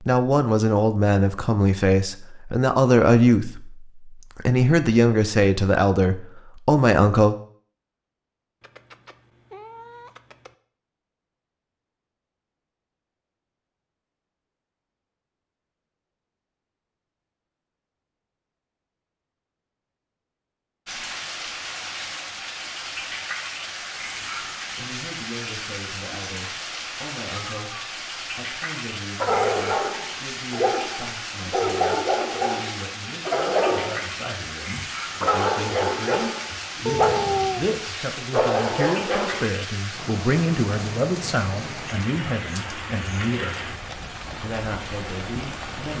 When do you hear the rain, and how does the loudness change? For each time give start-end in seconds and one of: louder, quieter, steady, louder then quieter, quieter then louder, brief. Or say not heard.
20.9-45.9 steady.